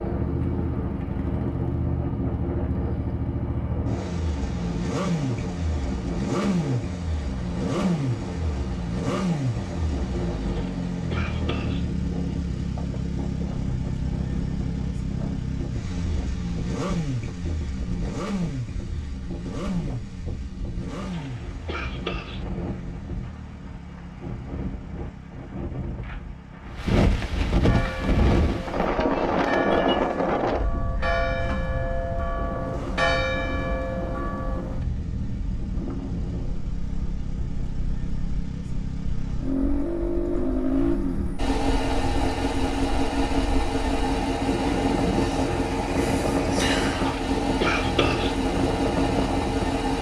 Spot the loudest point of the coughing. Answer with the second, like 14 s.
48 s.